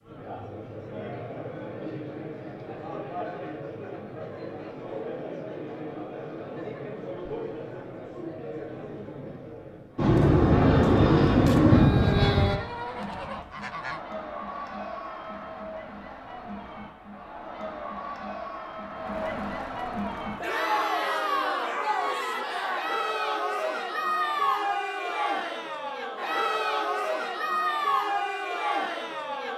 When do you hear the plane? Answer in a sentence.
You can hear the plane from 9.9 to 12.6 s.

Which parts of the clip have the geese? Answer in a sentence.
The geese can be heard from 12.0 to 14.0 s.